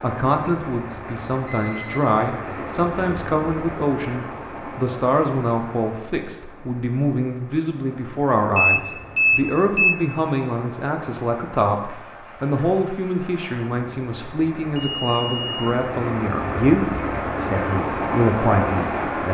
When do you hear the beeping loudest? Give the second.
9 s.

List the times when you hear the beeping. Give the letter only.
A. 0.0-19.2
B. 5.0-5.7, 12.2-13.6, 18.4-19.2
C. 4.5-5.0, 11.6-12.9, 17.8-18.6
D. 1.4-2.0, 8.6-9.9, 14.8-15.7
D.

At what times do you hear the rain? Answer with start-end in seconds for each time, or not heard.
0.0-19.2.